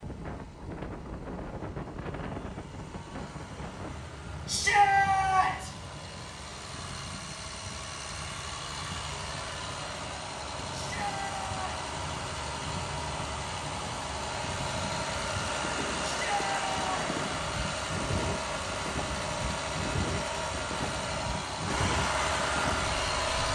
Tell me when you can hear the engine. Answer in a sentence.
The engine can be heard from 0.0 to 23.5 s.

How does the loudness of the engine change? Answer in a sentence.
The volume of the engine goes up.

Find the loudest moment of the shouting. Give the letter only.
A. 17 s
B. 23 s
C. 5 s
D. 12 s
C.